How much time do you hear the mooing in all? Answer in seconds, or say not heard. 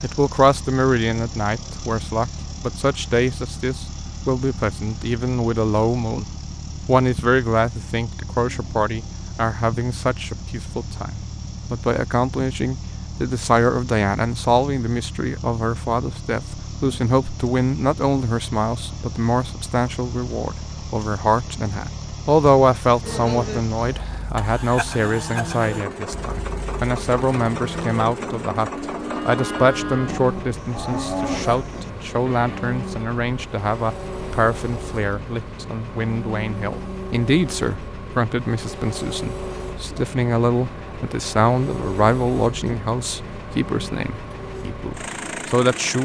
10 s.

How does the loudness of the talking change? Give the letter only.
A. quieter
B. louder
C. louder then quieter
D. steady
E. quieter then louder
D.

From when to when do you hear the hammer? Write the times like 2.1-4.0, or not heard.
not heard.